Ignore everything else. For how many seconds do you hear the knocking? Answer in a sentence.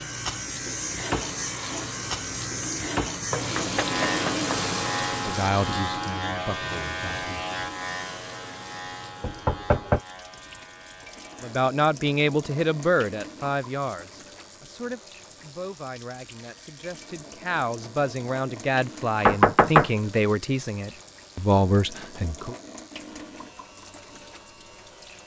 The knocking can be heard for 3 seconds in total.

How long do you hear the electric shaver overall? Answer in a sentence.
The electric shaver can be heard for 25 seconds in total.